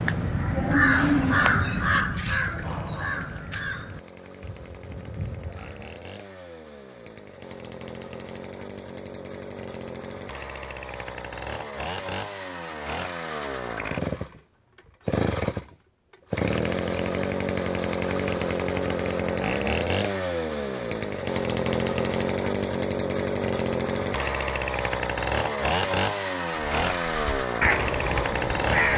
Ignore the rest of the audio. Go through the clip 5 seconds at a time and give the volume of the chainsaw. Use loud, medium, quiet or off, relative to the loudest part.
quiet, quiet, medium, loud, loud, loud.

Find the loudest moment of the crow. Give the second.
1 s.